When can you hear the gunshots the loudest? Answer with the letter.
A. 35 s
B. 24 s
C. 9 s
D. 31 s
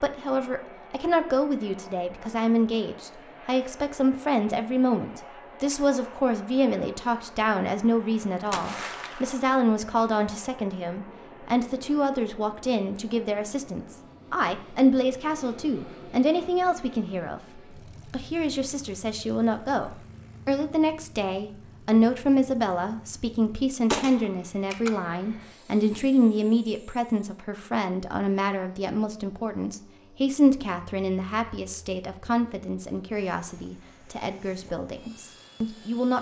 B.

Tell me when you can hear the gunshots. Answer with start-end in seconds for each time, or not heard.
8.5-9.6, 23.9-24.9.